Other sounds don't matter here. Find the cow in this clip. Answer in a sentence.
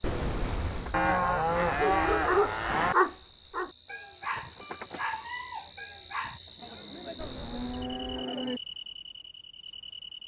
You can hear the cow from 0.9 to 3.0 s and from 6.6 to 8.6 s.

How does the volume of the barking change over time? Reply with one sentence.
The loudness of the barking goes down.